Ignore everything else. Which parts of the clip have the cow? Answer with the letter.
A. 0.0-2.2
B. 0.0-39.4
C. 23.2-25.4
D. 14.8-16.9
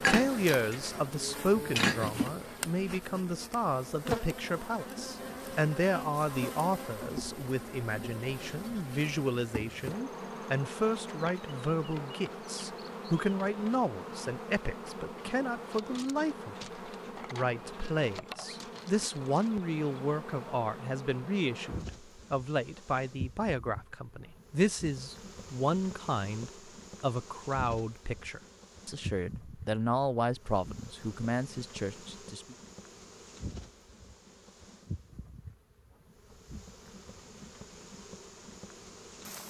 A.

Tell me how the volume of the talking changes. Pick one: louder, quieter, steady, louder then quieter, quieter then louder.
steady.